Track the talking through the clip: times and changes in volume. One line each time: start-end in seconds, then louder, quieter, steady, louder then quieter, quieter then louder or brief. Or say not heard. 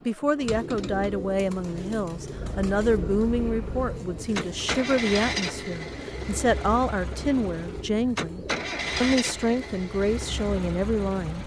0.1-11.4 steady.